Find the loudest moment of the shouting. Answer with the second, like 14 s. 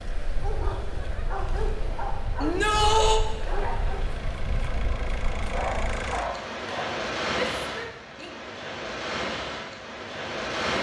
3 s.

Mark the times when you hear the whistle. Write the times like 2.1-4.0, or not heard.
not heard.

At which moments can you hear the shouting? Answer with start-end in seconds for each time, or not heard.
2.4-3.2, 7.5-8.3.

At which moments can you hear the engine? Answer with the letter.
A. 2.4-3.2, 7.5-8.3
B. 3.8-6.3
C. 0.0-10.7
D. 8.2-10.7
B.